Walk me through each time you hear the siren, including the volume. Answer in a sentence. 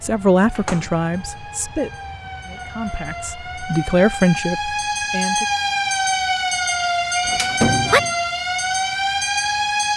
You can hear the siren from 0.0 to 9.9 s, getting louder.